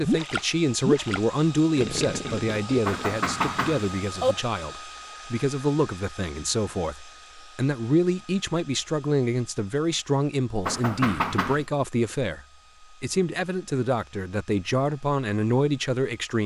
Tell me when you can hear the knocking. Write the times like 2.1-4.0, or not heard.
2.9-4.3, 10.7-11.7.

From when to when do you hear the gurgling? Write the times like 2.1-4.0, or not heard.
0.0-3.2.